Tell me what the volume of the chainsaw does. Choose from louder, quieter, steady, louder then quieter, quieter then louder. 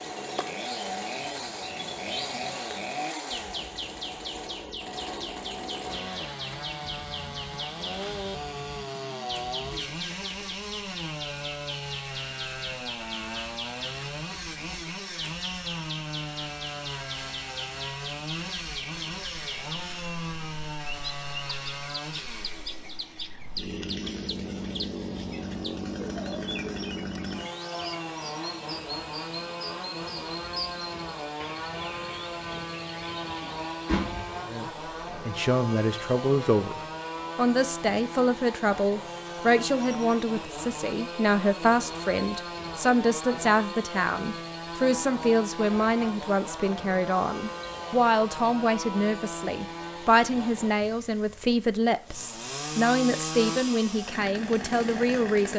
steady.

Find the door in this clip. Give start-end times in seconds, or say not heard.
33.4-34.4.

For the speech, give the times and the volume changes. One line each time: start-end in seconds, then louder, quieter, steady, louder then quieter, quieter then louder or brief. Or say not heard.
34.5-55.5 steady.